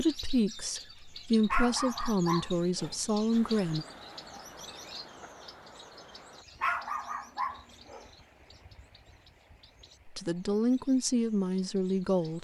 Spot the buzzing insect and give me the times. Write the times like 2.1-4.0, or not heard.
not heard.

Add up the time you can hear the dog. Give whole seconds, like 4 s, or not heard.
3 s.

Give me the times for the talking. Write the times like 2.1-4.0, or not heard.
0.0-3.9, 10.1-12.3.